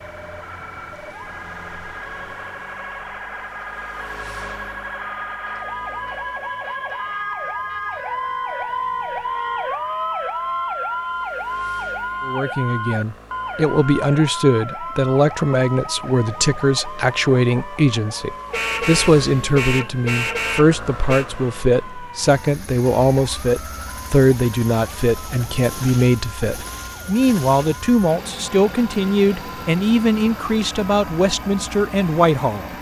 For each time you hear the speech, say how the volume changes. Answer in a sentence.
You can hear the speech from 12.2 to 32.7 s, at a steady volume.